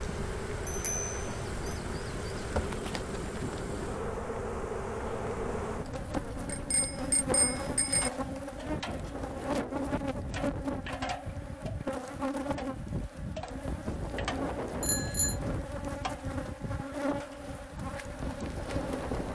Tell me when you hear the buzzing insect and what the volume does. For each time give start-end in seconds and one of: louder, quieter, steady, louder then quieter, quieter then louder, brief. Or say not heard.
0.0-19.3 steady.